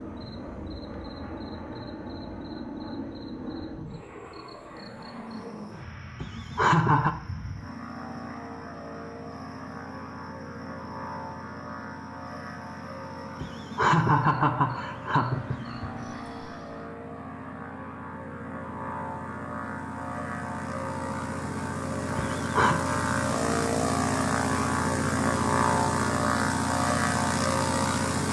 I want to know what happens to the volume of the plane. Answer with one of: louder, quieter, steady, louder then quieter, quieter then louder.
louder.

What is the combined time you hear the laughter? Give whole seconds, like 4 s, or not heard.
4 s.